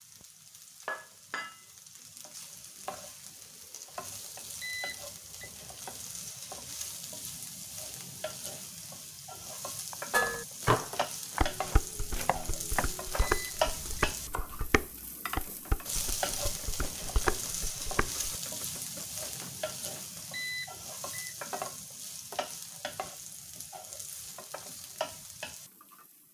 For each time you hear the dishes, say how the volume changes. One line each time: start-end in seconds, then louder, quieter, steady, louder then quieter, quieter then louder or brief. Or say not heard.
10.1-18.3 quieter.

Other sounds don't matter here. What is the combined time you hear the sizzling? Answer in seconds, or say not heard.
26 s.